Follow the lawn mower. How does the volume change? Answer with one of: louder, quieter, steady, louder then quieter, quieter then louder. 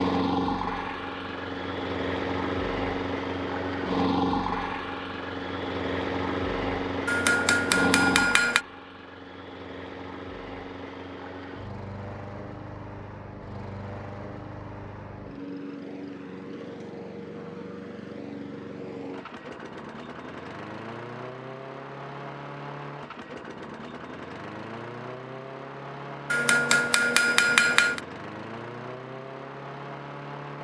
quieter.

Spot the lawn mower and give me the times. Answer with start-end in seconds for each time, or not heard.
0.0-30.5.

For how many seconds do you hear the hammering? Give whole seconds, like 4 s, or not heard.
3 s.